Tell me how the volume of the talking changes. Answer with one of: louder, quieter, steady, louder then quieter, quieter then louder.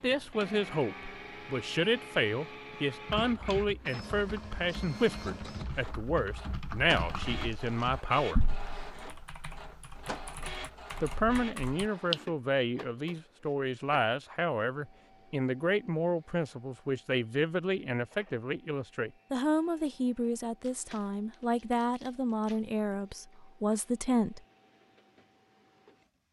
steady.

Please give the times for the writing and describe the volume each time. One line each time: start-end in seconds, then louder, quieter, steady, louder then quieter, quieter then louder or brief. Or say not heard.
not heard.